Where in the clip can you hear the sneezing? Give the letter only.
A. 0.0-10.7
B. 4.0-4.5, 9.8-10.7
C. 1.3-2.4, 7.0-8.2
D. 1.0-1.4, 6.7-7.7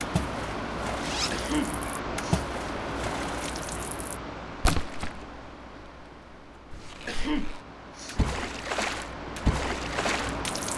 C.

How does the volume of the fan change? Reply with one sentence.
The volume of the fan goes down, then up.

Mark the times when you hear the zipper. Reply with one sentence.
You can hear the zipper from 1.0 to 1.4 s and from 6.7 to 7.7 s.